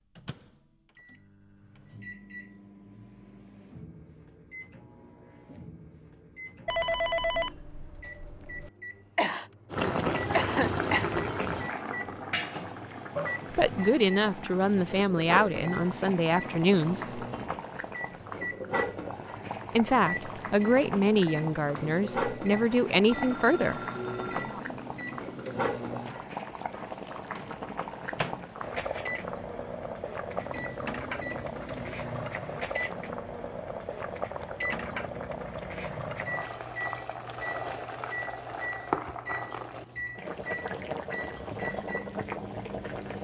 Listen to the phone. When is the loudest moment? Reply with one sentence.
The loudest moment of the phone is at 7 seconds.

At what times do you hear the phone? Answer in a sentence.
The phone can be heard from 6.7 to 8.7 s and from 23.1 to 24.6 s.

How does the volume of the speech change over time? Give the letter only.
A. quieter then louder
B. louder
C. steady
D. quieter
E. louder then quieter
C.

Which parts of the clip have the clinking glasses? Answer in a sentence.
The clinking glasses can't be heard in this clip.